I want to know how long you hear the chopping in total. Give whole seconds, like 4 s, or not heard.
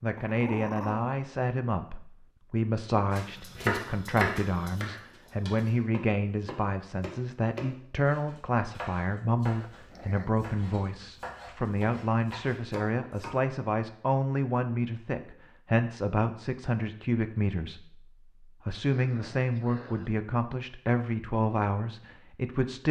10 s.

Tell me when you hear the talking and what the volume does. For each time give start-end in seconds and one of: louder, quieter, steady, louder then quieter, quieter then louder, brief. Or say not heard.
0.0-22.8 steady.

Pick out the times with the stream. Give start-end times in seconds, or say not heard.
not heard.